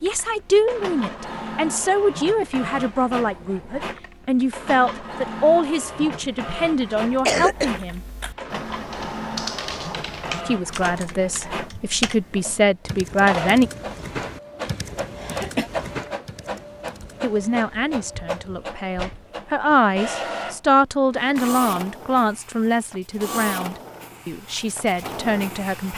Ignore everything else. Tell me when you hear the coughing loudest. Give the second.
7 s.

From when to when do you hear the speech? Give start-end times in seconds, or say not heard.
0.0-8.0, 10.4-13.7, 17.2-25.9.